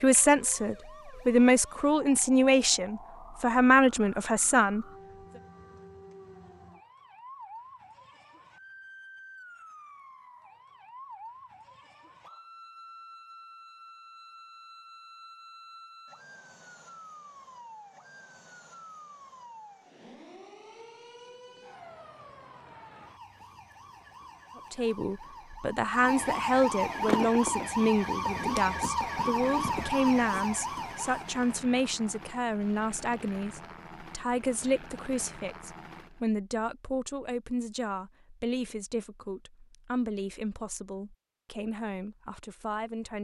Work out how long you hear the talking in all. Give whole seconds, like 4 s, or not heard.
23 s.